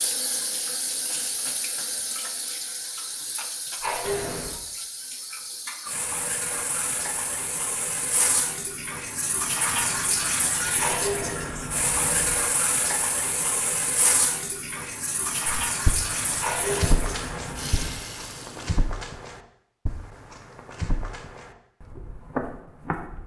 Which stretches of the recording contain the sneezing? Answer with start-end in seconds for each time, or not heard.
3.8-4.6, 10.8-12.4, 16.4-18.1.